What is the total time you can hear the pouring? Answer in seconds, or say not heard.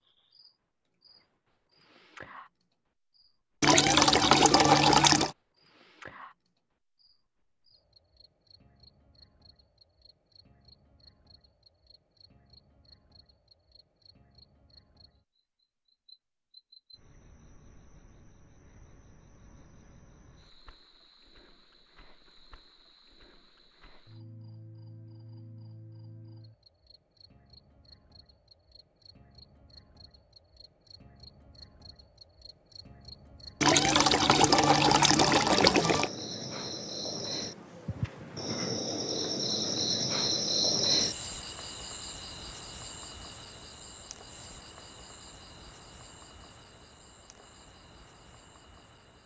4 s.